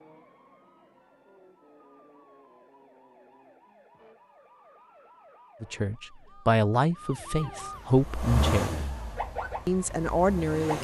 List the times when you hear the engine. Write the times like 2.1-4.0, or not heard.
7.8-10.7.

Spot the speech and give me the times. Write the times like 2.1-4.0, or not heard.
5.6-8.9, 9.7-10.7.